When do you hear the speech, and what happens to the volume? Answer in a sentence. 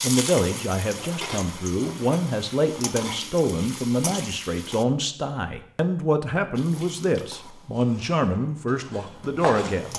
The speech can be heard from 0.0 to 9.9 s, at a steady volume.